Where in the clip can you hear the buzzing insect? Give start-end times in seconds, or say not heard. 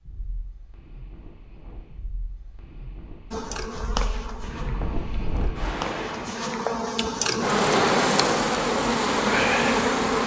3.3-10.2.